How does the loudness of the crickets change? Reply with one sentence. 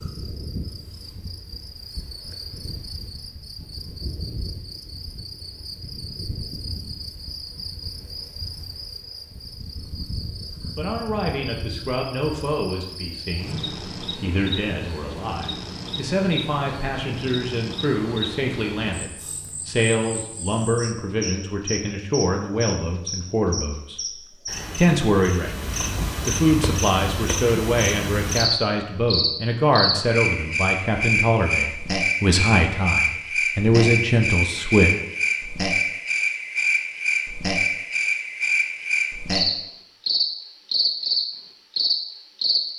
The loudness of the crickets goes up.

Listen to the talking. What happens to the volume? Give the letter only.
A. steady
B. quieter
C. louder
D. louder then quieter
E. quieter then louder
C.